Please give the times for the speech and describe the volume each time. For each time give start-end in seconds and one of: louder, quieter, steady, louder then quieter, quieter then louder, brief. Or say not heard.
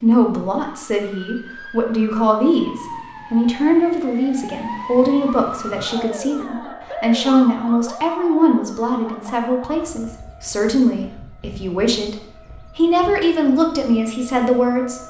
0.0-12.2 steady
12.8-15.0 brief.